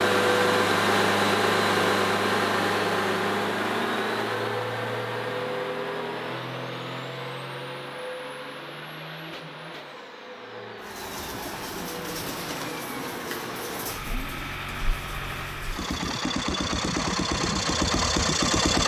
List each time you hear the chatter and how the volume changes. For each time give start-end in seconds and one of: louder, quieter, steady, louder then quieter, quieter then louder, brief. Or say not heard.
not heard.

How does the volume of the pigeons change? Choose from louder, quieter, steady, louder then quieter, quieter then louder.
quieter.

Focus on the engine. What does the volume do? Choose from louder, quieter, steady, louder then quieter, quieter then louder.
quieter then louder.